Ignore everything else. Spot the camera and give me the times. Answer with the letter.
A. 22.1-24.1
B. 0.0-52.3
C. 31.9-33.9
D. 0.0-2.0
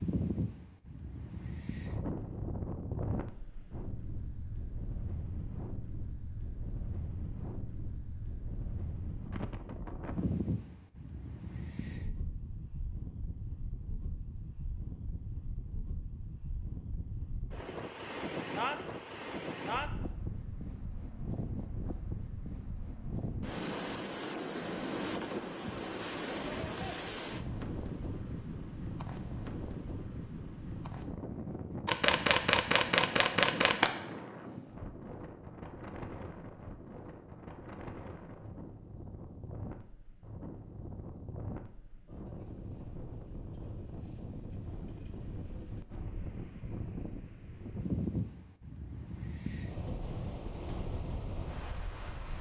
C.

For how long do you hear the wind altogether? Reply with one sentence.
The wind can be heard for 52 seconds in total.